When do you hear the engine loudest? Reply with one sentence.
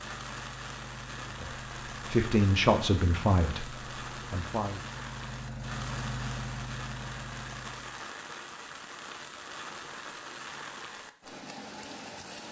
The loudest moment of the engine is at 6 seconds.